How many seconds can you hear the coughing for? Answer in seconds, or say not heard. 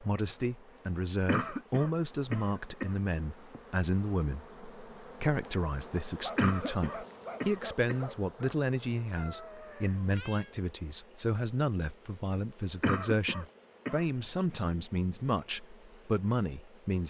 5 s.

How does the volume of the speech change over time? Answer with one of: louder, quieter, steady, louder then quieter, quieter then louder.
steady.